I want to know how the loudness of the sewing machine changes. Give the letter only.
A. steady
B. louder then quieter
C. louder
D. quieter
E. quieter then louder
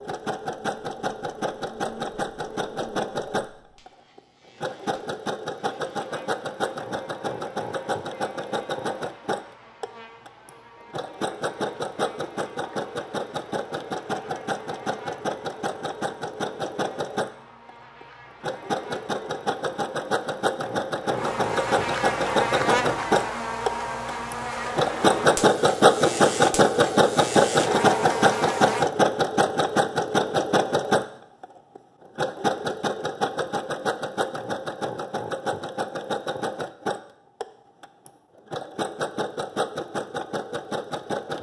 B.